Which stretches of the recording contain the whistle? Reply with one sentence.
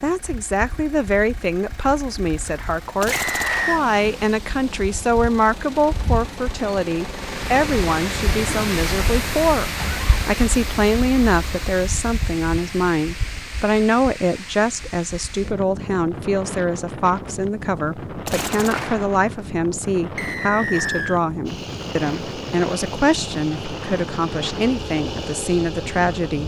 You can hear the whistle from 3.1 to 3.8 s and from 20.1 to 21.2 s.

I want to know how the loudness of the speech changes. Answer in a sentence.
The volume of the speech stays about the same.